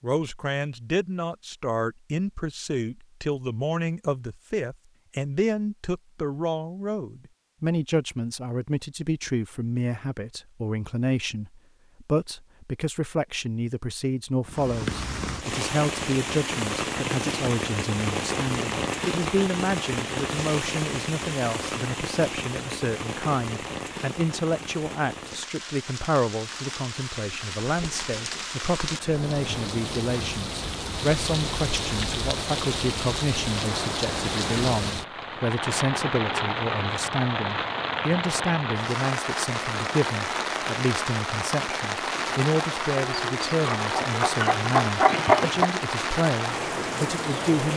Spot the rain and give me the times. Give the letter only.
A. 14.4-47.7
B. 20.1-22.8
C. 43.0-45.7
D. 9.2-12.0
A.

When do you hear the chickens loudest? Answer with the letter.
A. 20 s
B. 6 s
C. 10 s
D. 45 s
D.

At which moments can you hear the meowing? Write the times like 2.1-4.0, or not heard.
not heard.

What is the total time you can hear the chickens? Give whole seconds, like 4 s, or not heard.
3 s.